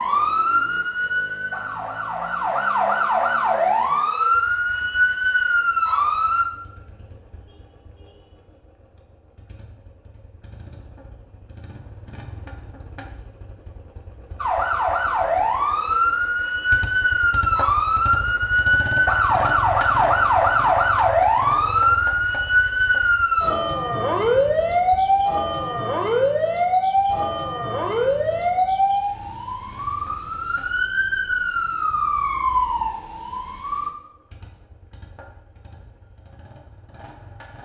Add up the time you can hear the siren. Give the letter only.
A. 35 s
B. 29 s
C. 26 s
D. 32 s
C.